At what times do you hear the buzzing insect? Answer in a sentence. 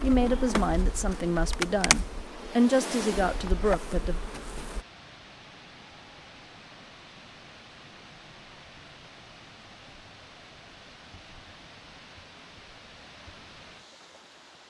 The buzzing insect can be heard from 0.0 to 4.8 s.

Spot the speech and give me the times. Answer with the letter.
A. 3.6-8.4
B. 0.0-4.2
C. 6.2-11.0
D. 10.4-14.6
B.